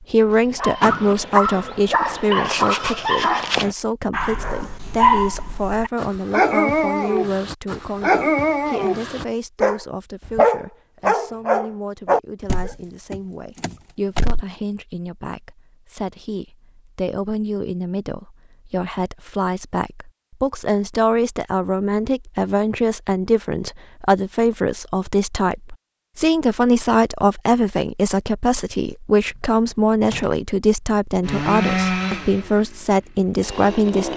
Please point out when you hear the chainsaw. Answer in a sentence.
You can hear the chainsaw from 31.2 to 34.1 s.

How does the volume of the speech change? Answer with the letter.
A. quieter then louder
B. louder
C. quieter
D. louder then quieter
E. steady
A.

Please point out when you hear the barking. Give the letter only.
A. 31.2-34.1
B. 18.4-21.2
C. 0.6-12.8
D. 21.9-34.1
C.